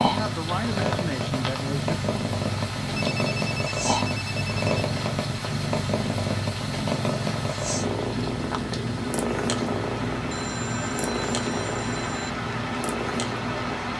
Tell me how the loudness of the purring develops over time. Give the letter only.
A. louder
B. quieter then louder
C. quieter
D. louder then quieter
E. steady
E.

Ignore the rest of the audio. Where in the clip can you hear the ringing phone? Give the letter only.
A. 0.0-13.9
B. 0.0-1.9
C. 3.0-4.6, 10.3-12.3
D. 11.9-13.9
C.